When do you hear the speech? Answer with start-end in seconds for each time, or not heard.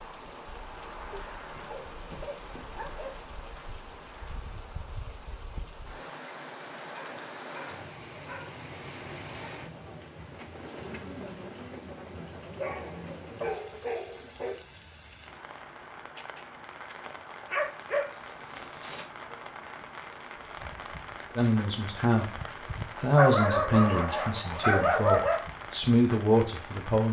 21.4-27.0.